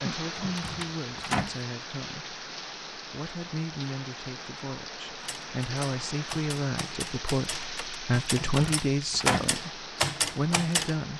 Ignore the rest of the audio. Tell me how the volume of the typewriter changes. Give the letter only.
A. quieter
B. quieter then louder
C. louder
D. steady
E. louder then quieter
C.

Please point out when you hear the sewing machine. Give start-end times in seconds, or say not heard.
not heard.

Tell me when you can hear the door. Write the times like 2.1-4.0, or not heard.
0.3-1.6, 8.3-9.6.